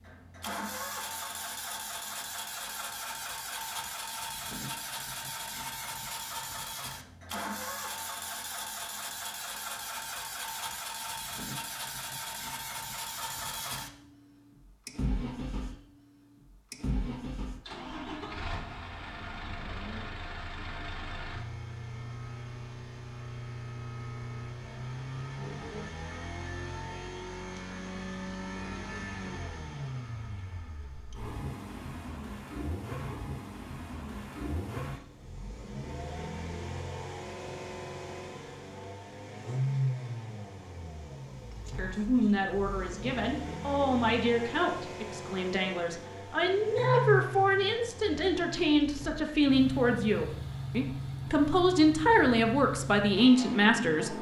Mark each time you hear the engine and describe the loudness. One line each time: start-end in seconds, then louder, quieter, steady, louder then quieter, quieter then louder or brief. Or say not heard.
0.0-54.1 steady.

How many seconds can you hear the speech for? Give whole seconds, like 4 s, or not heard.
12 s.